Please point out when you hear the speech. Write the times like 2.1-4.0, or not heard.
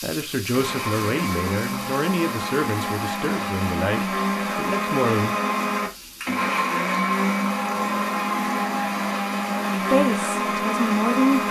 0.0-5.3, 9.9-11.4.